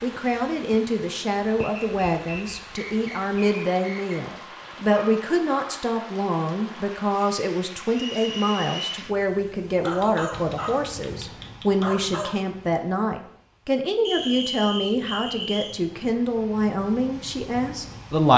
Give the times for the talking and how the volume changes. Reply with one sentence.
The talking can be heard from 0.0 to 18.3 s, at a steady volume.